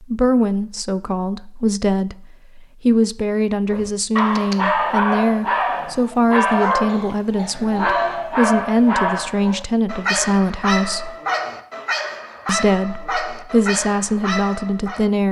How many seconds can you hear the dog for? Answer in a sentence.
The dog can be heard for 11 seconds in total.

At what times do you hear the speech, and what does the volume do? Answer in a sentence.
The speech can be heard from 0.0 to 11.2 s, at a steady volume; and briefly from 12.4 to 15.2 s.